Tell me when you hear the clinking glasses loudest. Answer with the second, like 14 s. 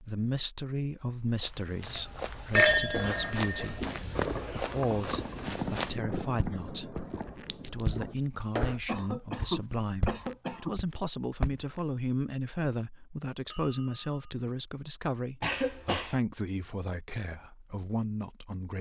3 s.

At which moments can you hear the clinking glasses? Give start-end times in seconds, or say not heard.
2.5-4.3, 7.5-8.2, 13.5-14.0.